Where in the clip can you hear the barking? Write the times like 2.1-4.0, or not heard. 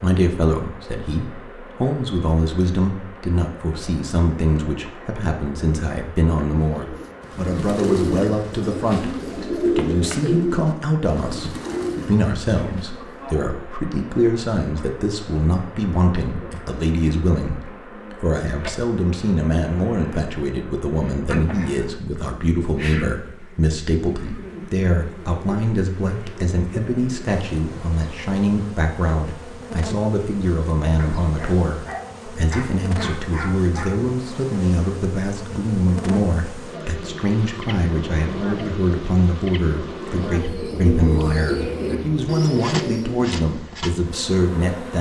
30.9-34.0.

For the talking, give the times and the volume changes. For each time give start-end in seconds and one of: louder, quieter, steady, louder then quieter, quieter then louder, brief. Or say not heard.
0.0-44.9 steady.